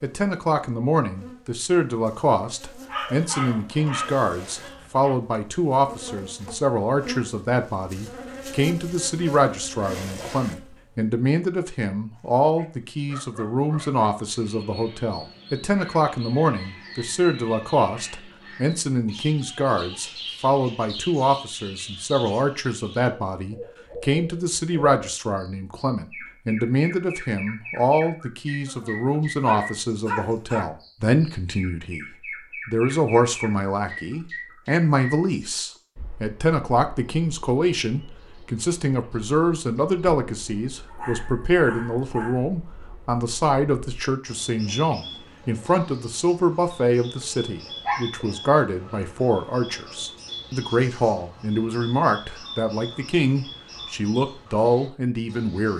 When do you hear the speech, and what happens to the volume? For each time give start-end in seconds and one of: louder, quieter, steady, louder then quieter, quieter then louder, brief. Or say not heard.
0.0-55.7 steady.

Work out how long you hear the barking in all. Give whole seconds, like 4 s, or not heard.
9 s.